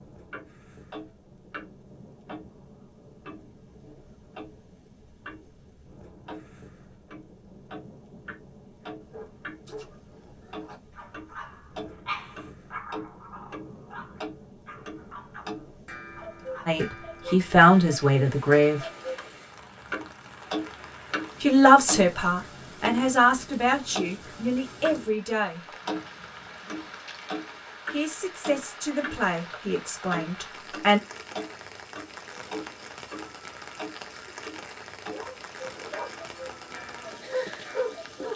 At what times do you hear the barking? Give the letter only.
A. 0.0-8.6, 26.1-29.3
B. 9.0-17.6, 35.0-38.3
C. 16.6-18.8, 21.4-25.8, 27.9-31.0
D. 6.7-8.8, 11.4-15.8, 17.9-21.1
B.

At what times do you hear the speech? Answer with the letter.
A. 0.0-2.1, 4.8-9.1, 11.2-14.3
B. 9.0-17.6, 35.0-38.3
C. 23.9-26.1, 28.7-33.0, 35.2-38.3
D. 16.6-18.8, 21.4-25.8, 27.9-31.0
D.